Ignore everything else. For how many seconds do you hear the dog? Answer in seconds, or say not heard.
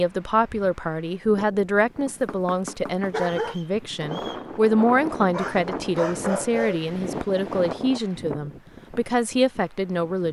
3 s.